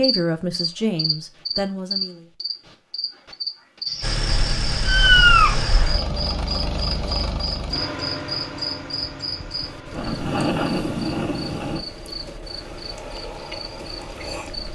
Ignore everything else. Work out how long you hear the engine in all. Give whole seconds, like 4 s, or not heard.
11 s.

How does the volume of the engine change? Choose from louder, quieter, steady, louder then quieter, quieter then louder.
quieter.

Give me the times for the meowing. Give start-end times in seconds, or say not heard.
4.3-6.0.